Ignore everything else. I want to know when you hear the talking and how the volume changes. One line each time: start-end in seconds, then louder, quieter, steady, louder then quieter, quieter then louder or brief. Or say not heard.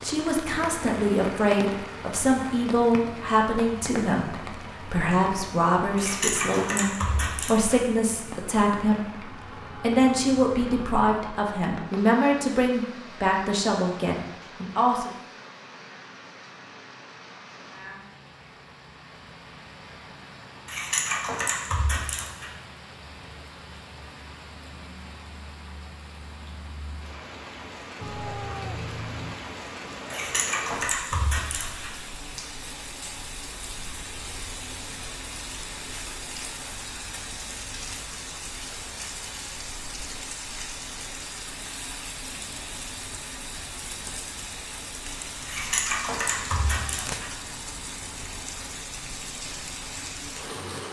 0.0-15.1 steady.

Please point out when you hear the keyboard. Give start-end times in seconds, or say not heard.
6.0-7.8, 20.6-22.5, 30.1-31.9, 45.5-47.3.